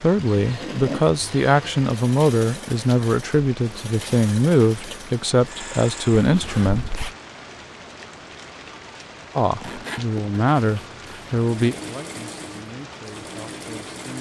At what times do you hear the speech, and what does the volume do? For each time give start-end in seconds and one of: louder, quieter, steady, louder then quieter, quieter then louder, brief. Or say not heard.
0.0-7.1 steady
9.3-14.1 quieter.